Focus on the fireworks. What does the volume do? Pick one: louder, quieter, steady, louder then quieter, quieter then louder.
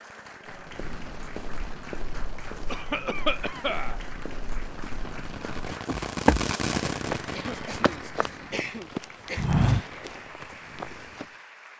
louder then quieter.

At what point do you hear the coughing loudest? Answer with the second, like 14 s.
3 s.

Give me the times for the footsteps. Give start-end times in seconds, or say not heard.
0.5-11.2.